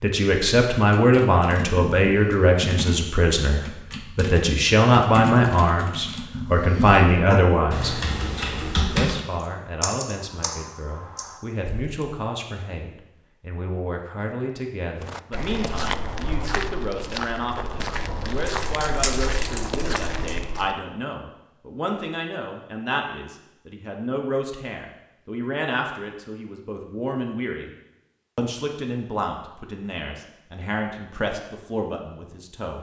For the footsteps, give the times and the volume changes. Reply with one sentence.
You can hear the footsteps from 15.0 to 20.8 s, at a steady volume.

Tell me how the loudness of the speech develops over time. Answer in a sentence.
The loudness of the speech goes down.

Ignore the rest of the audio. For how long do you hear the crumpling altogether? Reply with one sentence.
The crumpling can be heard for 2 seconds in total.